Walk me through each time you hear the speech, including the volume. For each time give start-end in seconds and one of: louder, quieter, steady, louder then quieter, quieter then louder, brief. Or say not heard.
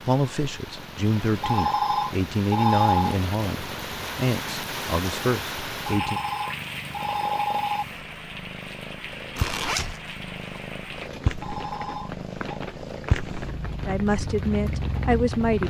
0.1-6.2 steady
13.8-15.6 brief.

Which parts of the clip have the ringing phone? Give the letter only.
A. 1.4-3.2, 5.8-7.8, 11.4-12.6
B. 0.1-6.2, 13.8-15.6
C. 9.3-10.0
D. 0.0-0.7
A.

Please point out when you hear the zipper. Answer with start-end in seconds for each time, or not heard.
9.3-10.0.